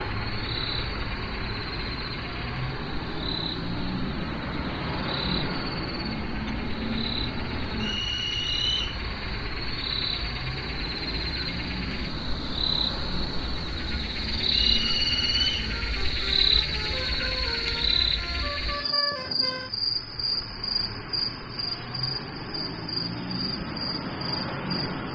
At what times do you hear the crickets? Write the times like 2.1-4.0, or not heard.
0.0-25.1.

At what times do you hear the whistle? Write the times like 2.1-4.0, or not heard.
7.8-9.0, 14.5-15.7.